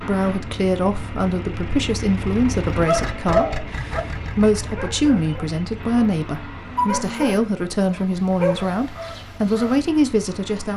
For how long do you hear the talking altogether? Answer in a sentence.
The talking can be heard for 11 seconds in total.